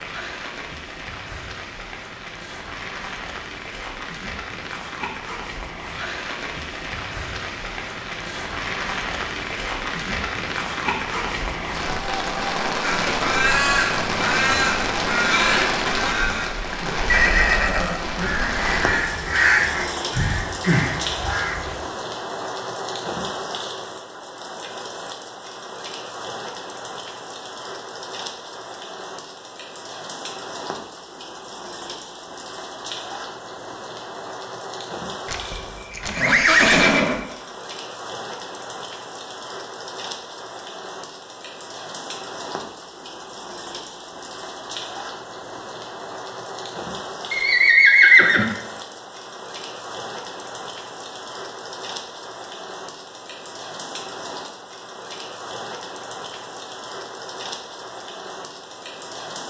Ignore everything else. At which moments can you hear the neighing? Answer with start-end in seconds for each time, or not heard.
17.1-18.3, 35.2-37.2, 47.3-48.5.